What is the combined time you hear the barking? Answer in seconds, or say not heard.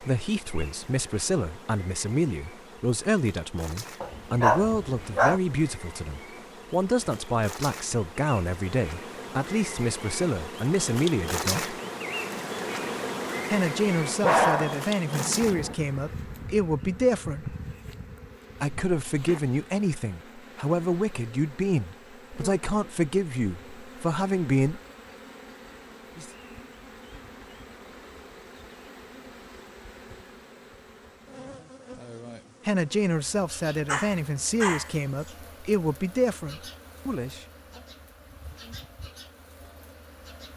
4 s.